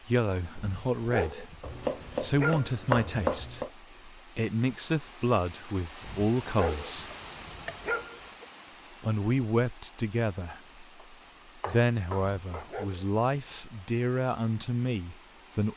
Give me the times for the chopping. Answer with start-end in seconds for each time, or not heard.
1.6-3.7, 7.1-7.8, 10.9-12.7.